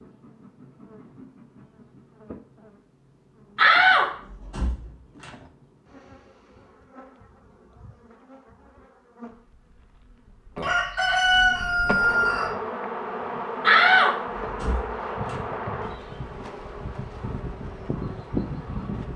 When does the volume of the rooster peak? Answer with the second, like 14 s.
11 s.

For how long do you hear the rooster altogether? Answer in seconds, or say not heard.
2 s.